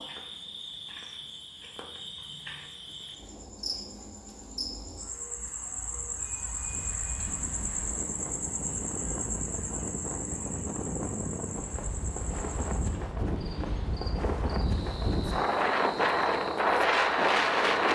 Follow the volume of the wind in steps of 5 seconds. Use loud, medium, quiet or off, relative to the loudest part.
off, quiet, medium, loud.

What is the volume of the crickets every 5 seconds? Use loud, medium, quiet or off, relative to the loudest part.
medium, loud, medium, medium.